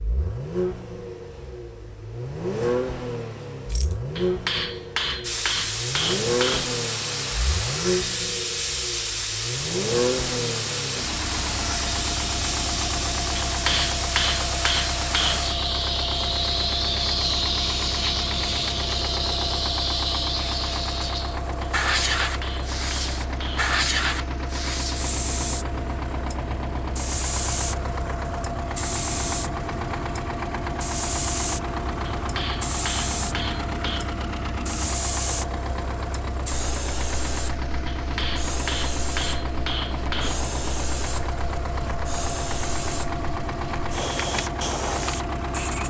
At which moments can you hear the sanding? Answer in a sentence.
You can't hear the sanding here.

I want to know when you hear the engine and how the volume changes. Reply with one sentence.
You can hear the engine from 0.0 to 45.8 s, at a steady volume.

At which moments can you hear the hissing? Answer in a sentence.
The hissing can be heard from 5.2 to 45.8 s.